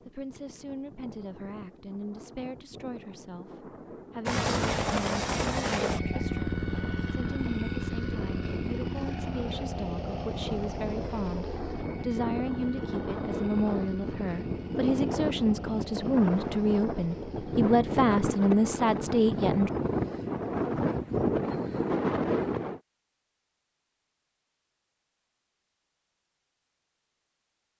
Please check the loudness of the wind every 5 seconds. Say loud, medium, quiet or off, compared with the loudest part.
quiet, quiet, medium, loud, loud, off.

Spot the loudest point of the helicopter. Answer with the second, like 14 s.
5 s.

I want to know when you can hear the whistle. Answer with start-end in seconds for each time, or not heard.
not heard.